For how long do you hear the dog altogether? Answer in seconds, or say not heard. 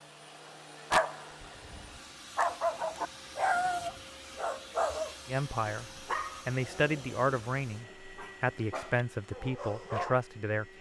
9 s.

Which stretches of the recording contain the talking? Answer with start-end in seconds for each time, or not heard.
5.2-10.7.